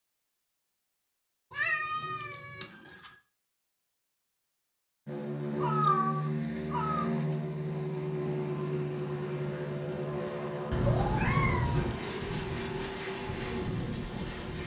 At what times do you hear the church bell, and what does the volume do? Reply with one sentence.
You can't hear the church bell here.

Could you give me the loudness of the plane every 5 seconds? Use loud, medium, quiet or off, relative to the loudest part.
off, loud, loud.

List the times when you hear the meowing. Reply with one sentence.
You can hear the meowing from 1.5 to 3.1 s, from 5.5 to 7.1 s and from 10.7 to 12.0 s.